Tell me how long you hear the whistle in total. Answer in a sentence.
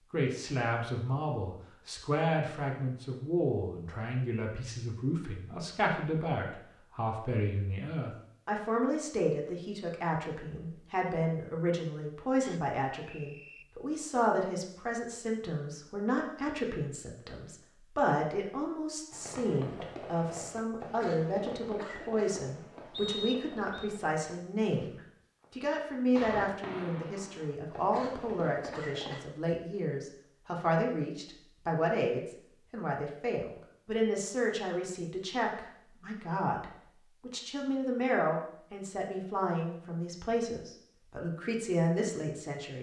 The whistle can be heard for 2 seconds in total.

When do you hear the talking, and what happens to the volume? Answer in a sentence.
The talking can be heard from 0.1 to 42.7 s, at a steady volume.